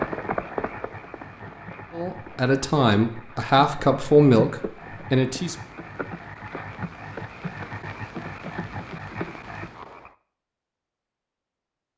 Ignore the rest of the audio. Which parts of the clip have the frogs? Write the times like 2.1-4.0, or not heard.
0.0-10.1.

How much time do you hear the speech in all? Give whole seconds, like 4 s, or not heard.
4 s.